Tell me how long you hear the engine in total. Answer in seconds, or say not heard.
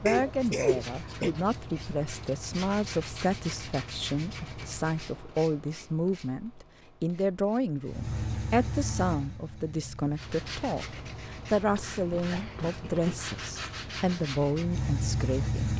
13 s.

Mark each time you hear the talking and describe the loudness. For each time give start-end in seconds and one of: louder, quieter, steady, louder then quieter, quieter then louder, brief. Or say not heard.
0.0-15.7 steady.